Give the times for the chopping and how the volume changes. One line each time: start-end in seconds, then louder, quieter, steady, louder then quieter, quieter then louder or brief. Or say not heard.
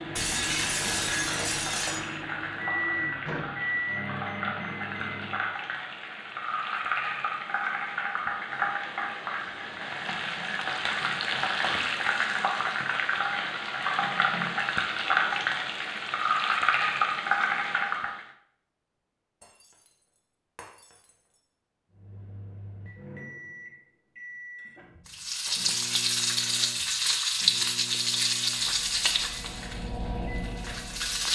not heard.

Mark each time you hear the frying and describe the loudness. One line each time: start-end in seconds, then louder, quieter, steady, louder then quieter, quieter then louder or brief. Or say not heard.
0.0-18.2 louder
25.1-31.2 quieter.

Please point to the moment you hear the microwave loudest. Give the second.
3 s.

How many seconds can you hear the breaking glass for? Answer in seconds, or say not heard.
3 s.